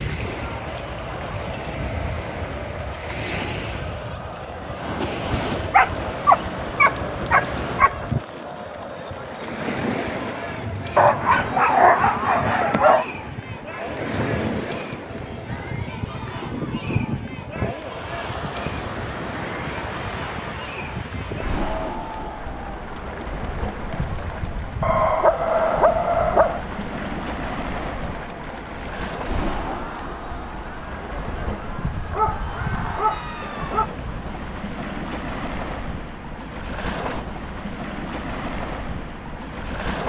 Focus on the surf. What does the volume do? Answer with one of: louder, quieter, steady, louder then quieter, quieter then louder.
steady.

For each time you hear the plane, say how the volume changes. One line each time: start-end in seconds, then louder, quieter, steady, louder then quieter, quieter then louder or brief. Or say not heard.
not heard.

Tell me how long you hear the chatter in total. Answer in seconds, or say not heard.
34 s.